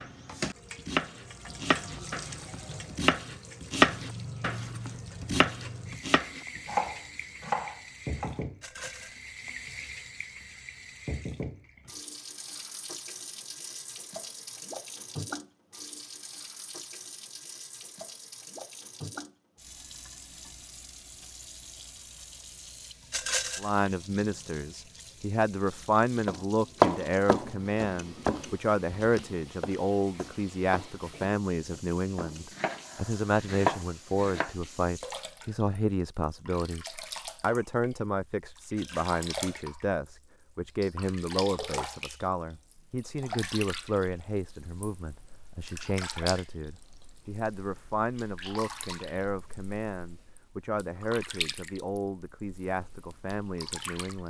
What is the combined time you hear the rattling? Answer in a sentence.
The rattling can be heard for 2 seconds in total.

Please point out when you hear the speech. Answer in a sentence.
You can hear the speech from 23.6 to 54.2 s.